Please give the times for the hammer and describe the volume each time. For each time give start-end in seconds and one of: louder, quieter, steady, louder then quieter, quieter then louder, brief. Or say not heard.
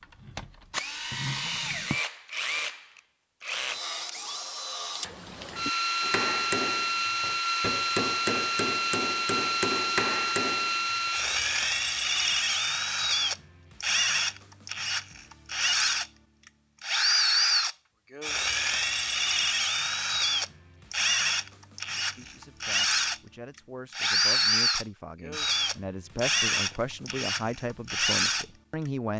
6.0-11.1 steady.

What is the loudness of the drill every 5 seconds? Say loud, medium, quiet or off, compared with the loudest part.
medium, loud, loud, loud, loud, loud.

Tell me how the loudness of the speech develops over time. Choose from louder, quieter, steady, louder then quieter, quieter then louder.
louder.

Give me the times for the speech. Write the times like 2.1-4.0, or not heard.
21.9-29.1.